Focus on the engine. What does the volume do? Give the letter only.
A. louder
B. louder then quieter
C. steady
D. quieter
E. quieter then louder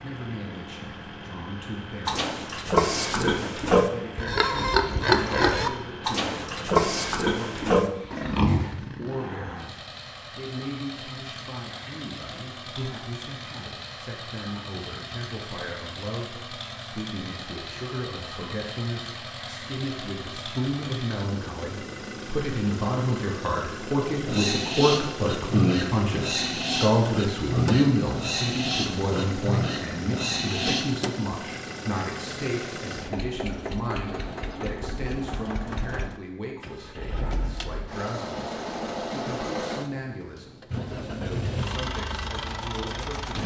A.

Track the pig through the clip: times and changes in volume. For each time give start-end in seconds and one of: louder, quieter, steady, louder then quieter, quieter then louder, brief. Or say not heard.
2.0-8.7 steady
24.1-30.9 steady.